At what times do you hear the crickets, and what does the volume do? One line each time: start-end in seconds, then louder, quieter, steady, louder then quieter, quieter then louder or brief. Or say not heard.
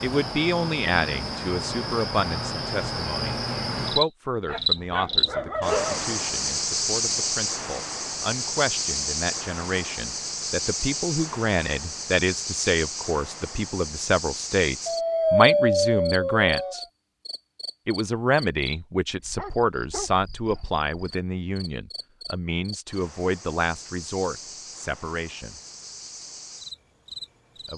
0.0-27.7 quieter.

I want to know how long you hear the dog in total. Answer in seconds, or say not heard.
5 s.